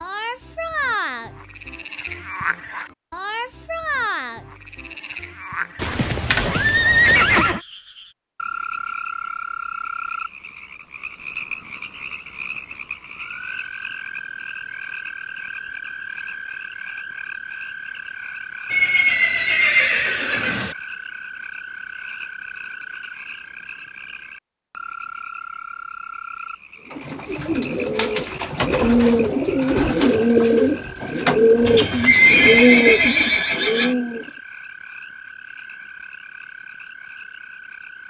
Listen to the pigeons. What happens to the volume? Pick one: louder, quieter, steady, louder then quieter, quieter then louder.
louder.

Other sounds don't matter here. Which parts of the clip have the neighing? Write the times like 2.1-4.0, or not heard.
5.8-7.6, 18.7-20.8, 31.6-34.0.